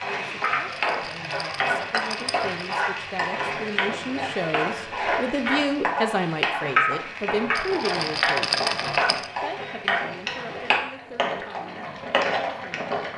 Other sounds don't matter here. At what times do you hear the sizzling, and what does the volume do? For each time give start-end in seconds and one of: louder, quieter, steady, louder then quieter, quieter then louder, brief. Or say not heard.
0.0-13.1 steady.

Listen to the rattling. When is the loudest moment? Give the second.
9 s.